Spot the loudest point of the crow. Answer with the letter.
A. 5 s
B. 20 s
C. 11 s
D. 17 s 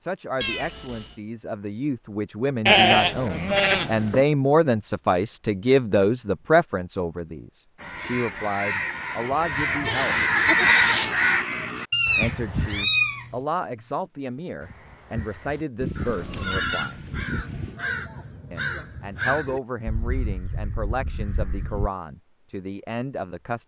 C.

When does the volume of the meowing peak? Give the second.
13 s.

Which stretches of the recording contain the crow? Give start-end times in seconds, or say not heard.
7.8-12.8, 14.6-21.9.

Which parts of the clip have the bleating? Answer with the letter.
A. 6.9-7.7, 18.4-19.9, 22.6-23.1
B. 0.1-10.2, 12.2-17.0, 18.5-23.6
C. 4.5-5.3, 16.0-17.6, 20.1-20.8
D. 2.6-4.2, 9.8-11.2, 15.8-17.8
D.